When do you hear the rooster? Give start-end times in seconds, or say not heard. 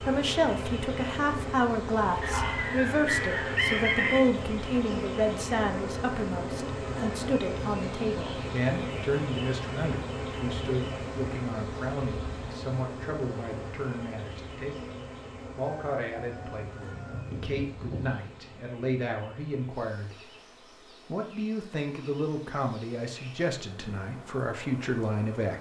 2.2-4.2, 15.6-18.1.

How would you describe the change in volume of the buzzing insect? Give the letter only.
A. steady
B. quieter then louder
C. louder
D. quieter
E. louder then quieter
D.